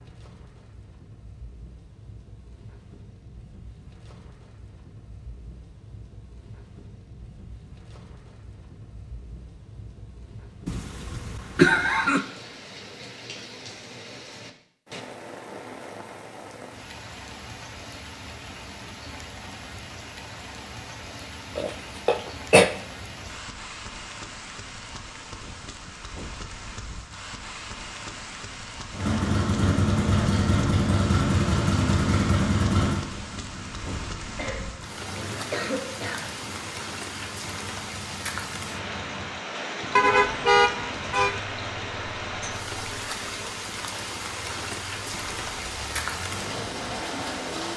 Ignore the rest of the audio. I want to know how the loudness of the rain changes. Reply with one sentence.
The loudness of the rain goes up.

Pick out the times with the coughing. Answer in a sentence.
The coughing can be heard from 10.7 to 12.2 s, from 21.6 to 22.7 s and from 34.4 to 36.3 s.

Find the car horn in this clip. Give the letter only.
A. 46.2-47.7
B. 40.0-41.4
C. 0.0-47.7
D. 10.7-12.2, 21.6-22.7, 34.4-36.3
B.